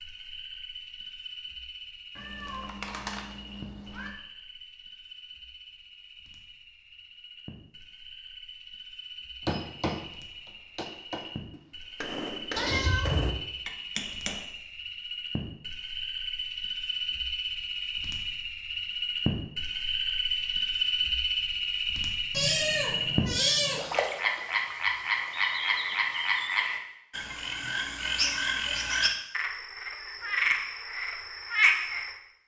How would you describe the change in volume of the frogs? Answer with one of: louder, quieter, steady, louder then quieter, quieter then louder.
louder.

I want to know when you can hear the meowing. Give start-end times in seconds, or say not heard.
2.1-4.1, 12.6-13.3, 22.3-23.8.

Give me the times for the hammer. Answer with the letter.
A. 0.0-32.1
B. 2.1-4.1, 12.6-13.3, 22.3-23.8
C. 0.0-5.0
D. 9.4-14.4
D.